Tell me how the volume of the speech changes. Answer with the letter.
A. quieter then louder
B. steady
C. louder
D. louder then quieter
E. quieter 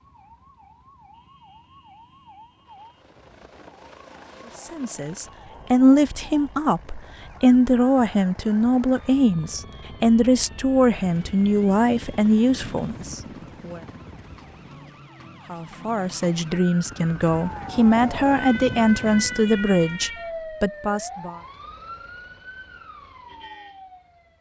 B.